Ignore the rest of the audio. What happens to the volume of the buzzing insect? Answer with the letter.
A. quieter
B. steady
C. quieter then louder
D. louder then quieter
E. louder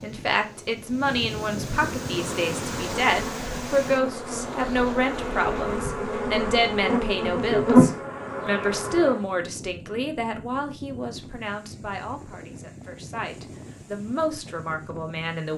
E.